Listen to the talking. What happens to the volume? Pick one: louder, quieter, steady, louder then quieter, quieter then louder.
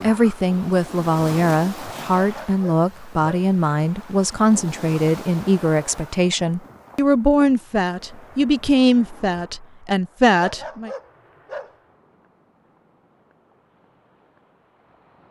steady.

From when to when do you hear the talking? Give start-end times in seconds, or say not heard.
0.0-10.9.